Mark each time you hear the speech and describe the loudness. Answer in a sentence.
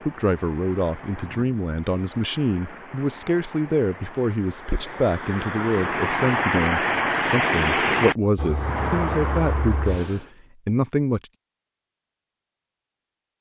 The speech can be heard from 0.1 to 11.2 s, at a steady volume.